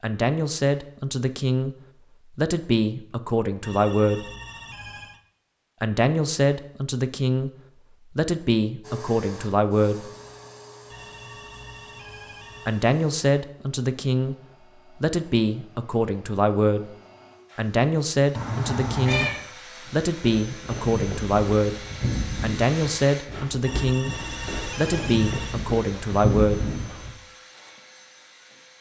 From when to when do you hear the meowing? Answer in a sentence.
The meowing can be heard from 18.4 to 19.4 s.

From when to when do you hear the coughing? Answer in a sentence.
The coughing can't be heard in this clip.